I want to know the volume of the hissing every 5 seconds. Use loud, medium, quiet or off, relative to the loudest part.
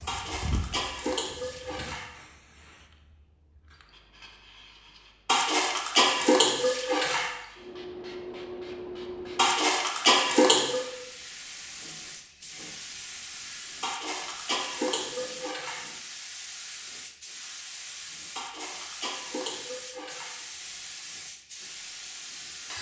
medium, loud, loud, loud, loud.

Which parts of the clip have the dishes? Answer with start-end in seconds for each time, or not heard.
0.1-2.0, 5.2-7.3, 9.3-10.8, 13.8-15.8, 18.4-20.4.